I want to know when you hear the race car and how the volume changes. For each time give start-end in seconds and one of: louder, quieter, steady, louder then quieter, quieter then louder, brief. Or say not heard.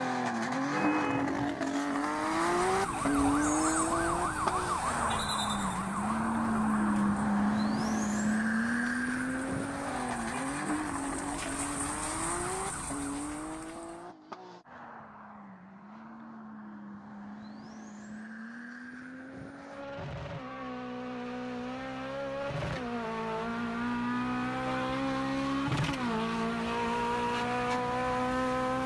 0.0-28.8 quieter then louder.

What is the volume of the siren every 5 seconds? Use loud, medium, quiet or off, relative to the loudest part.
loud, medium, medium, off, off, off.